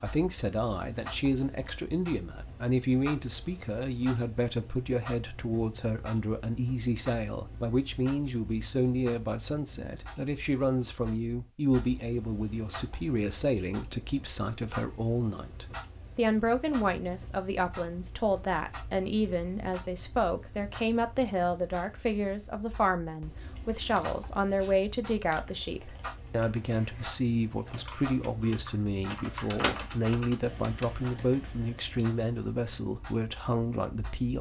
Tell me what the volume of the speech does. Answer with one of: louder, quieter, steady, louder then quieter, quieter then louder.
steady.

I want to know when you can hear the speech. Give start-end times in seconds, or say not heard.
0.0-34.3.